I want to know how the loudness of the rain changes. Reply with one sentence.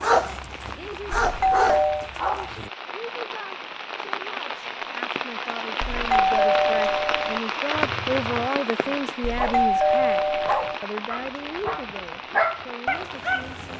The loudness of the rain goes up, then down.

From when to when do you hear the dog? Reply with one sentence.
You can hear the dog from 0.0 to 2.7 s and from 7.7 to 13.7 s.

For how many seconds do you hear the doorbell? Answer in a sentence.
The doorbell can be heard for 4 seconds in total.